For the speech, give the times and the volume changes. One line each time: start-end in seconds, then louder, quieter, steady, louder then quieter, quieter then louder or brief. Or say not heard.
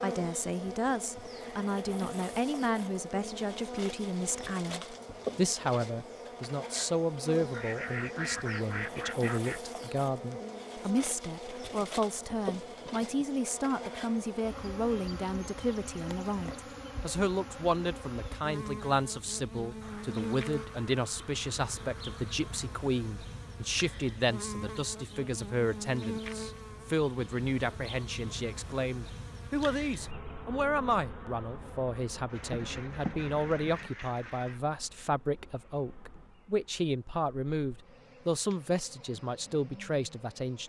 0.0-40.6 steady.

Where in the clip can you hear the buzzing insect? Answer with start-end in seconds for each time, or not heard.
0.0-40.6.